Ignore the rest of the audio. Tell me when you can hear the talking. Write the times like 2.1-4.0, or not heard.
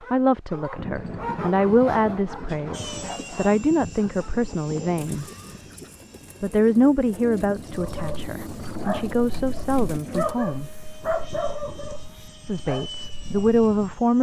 0.1-5.2, 6.4-10.7, 12.4-14.1.